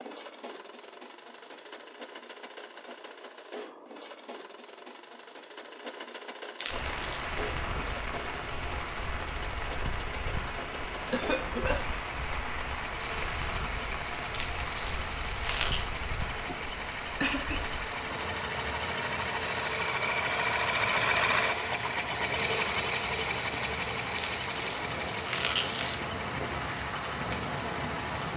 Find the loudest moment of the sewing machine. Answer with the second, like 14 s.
21 s.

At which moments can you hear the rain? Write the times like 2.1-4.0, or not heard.
6.7-28.3.